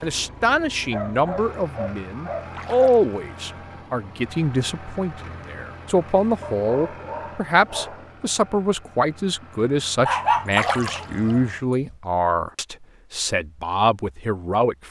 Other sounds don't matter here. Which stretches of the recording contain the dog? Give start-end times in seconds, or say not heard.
0.9-2.9, 6.4-8.1, 10.1-11.4.